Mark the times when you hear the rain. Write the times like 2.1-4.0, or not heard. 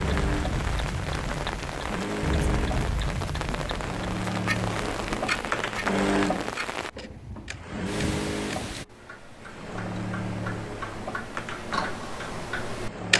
0.0-8.8.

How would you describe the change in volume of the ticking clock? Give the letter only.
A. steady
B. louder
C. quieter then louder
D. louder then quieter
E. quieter
C.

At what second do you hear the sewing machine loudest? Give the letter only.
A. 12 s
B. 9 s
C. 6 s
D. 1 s
C.